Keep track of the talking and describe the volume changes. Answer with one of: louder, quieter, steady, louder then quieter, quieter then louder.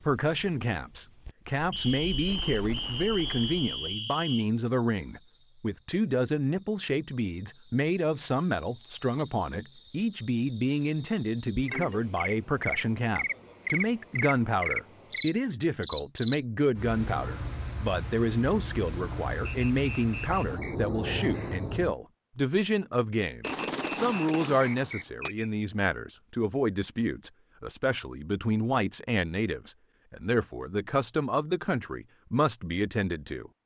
steady.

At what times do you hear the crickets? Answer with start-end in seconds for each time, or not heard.
0.0-21.9.